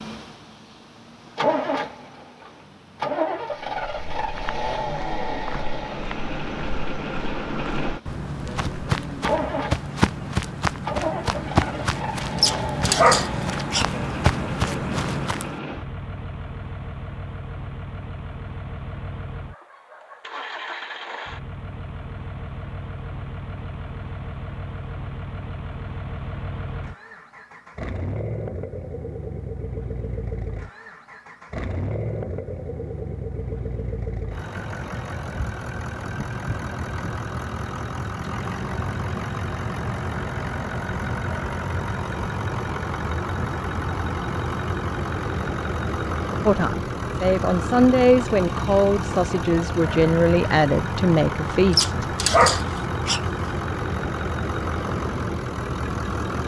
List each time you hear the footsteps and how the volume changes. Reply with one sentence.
The footsteps can be heard from 3.8 to 15.6 s, getting louder.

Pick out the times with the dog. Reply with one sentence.
You can hear the dog from 12.3 to 13.8 s and from 51.7 to 53.2 s.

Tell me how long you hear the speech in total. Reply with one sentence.
You can hear the speech for 6 seconds altogether.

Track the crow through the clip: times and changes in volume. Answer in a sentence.
You can't hear the crow here.